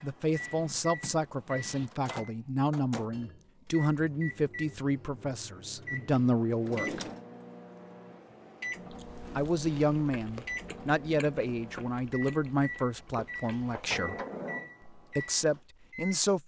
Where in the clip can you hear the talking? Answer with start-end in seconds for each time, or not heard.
0.0-7.0, 9.3-14.2, 14.9-16.4.